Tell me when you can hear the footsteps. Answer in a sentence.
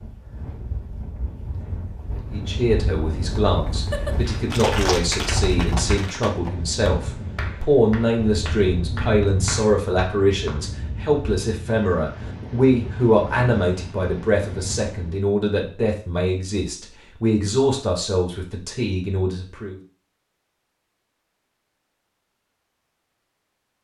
The footsteps can't be heard in this clip.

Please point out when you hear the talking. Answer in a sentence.
You can hear the talking from 2.3 to 19.8 s.